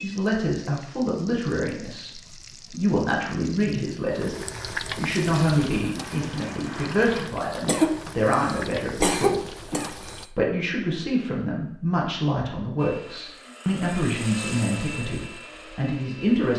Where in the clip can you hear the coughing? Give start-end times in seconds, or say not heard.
7.7-10.2.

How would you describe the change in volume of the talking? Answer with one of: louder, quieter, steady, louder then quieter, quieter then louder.
steady.